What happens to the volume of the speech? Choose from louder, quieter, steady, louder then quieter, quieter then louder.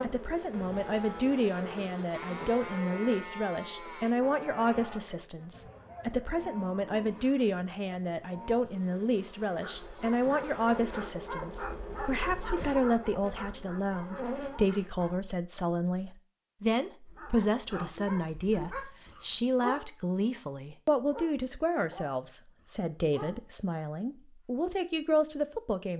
steady.